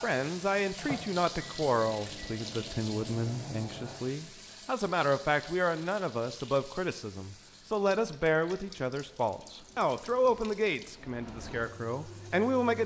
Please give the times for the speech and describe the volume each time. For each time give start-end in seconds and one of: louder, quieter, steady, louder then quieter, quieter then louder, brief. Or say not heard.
0.0-12.8 steady.